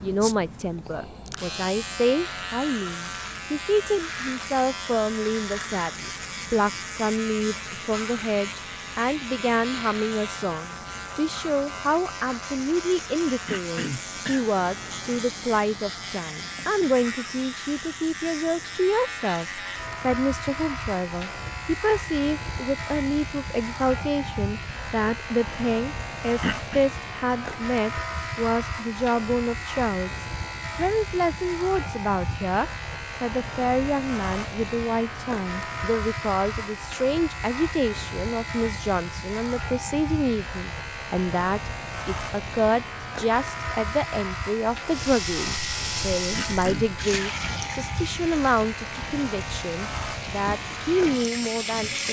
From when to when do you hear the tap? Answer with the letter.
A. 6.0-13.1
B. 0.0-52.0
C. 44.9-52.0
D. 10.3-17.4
C.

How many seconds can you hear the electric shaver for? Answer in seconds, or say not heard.
52 s.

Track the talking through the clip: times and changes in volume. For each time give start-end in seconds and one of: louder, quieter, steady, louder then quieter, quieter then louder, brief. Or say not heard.
0.0-52.0 steady.